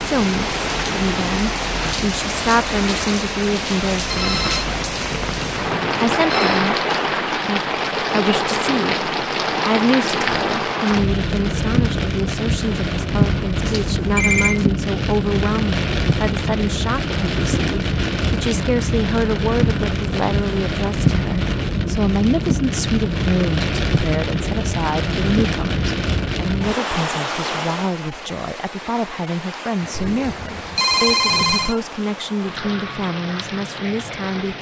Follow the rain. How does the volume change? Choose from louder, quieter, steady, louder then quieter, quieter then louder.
quieter.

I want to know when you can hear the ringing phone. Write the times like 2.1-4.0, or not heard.
4.1-6.7, 13.7-14.7, 29.8-31.8.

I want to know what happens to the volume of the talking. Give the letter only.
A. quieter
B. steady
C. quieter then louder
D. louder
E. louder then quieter
B.